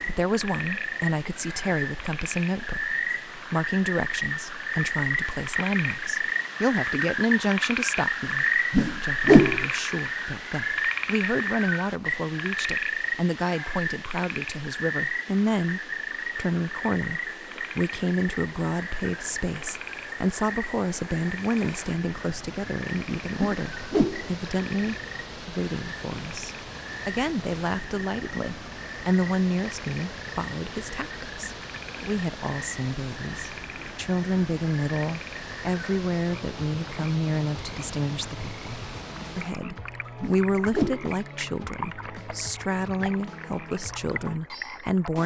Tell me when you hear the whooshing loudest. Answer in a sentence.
The volume of the whooshing peaks at 9 seconds.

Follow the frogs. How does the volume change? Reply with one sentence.
The volume of the frogs goes down.